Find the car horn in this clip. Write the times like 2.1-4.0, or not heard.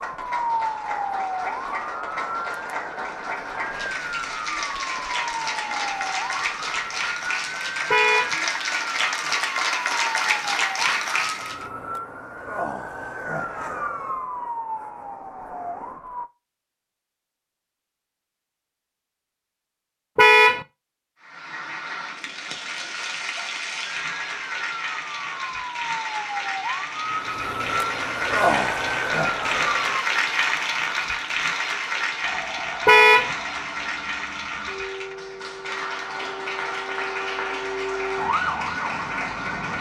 7.9-8.3, 20.1-20.6, 32.9-33.3.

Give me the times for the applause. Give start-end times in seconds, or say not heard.
0.0-11.7, 21.2-39.7.